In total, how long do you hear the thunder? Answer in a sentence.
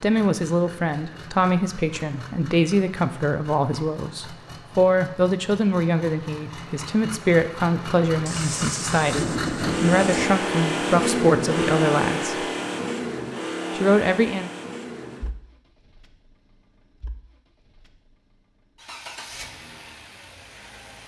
You can hear the thunder for 2 seconds altogether.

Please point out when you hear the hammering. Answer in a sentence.
You can't hear the hammering here.